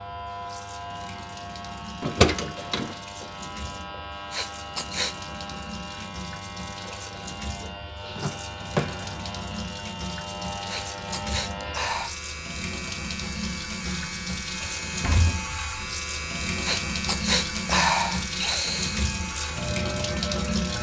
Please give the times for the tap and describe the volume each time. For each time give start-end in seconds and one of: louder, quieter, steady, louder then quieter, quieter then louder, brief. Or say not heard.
0.0-20.7 louder.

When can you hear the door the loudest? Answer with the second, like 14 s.
2 s.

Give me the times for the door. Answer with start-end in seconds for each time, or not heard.
2.0-2.9, 8.2-9.1, 14.6-15.4.